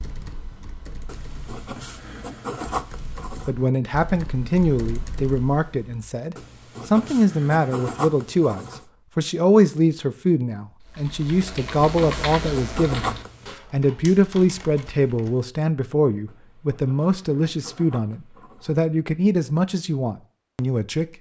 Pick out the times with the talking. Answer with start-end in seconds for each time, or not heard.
3.5-21.1.